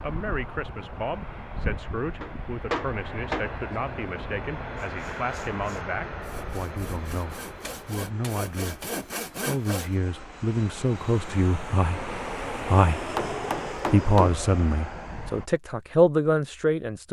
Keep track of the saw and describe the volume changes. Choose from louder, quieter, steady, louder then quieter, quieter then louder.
louder.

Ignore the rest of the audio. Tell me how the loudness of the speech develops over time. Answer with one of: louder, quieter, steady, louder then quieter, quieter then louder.
louder.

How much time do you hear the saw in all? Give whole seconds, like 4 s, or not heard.
5 s.